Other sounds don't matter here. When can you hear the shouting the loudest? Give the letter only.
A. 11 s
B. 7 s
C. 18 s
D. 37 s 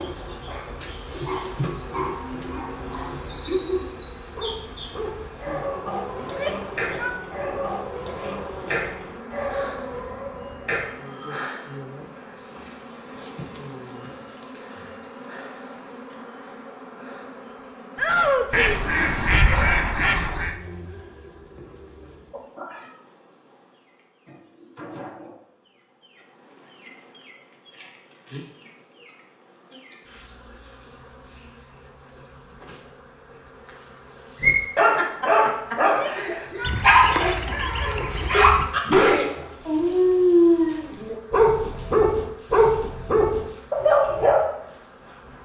C.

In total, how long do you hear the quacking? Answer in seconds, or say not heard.
4 s.